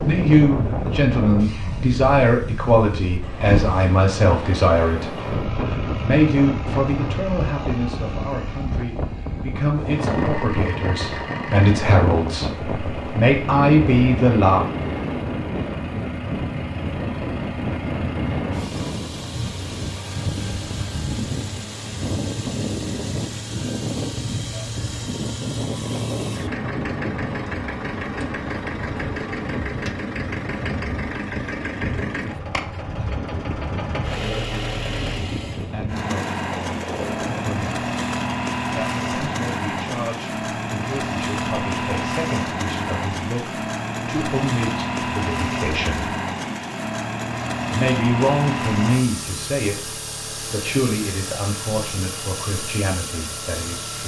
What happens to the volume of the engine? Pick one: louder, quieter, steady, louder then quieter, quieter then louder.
louder.